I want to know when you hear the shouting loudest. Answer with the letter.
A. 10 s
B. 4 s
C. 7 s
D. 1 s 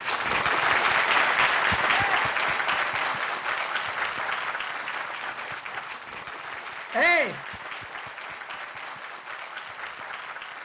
C.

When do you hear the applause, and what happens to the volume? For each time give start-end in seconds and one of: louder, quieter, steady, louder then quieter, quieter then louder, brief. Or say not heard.
0.0-10.5 quieter.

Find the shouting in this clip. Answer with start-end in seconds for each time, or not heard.
1.9-2.4, 6.9-7.4.